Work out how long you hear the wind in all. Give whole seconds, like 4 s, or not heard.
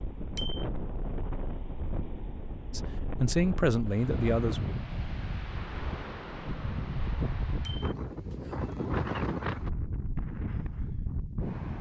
12 s.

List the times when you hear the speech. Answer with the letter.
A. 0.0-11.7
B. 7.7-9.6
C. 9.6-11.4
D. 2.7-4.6
D.